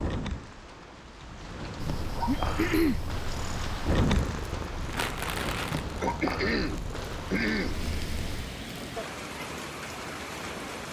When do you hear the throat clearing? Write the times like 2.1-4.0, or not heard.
2.2-3.0, 6.0-7.8.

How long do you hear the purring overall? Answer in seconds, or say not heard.
7 s.